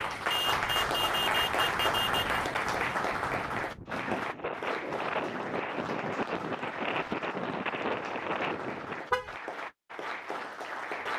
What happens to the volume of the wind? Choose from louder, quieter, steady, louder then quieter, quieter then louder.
louder.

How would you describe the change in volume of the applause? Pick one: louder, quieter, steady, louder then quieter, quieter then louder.
quieter.